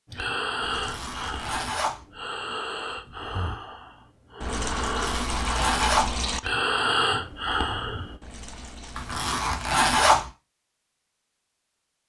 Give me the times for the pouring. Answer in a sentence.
The pouring can be heard from 0.6 to 1.6 s, from 4.4 to 6.4 s and from 8.2 to 10.2 s.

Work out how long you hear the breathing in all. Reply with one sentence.
The breathing can be heard for 8 seconds in total.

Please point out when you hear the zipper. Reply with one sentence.
The zipper can be heard from 0.8 to 2.0 s, from 5.0 to 6.2 s and from 8.9 to 10.2 s.